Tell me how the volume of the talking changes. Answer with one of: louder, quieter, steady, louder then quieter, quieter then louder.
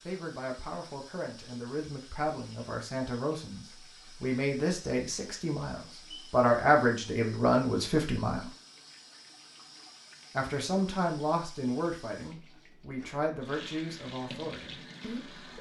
louder then quieter.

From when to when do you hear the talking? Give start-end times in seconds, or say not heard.
0.1-8.5, 10.3-15.5.